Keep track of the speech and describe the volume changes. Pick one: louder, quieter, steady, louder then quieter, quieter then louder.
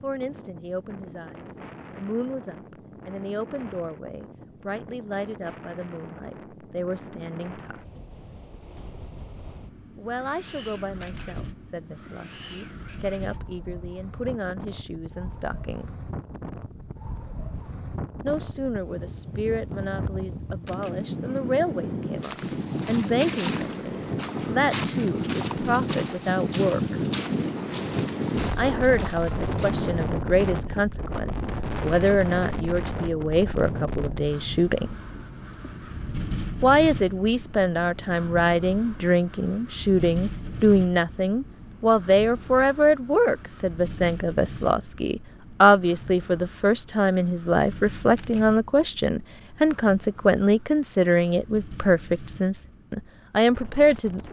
louder.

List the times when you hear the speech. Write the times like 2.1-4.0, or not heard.
0.0-7.8, 9.9-15.9, 18.2-27.0, 28.6-35.0, 36.6-54.2.